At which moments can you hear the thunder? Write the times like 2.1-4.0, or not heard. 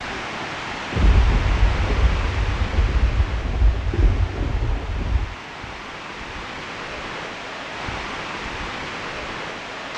0.9-5.3.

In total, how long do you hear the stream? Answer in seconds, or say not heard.
10 s.